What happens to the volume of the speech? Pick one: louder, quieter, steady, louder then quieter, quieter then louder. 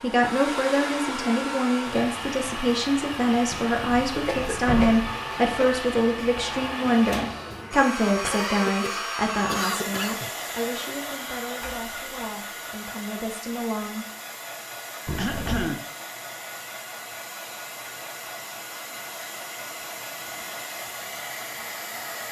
quieter.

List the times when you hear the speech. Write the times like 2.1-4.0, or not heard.
0.0-14.1.